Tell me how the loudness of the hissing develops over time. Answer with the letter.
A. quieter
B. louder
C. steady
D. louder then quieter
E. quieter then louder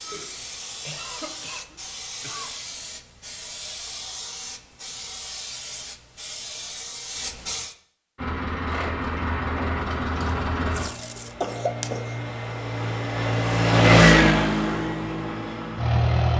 C.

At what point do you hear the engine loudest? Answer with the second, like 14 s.
14 s.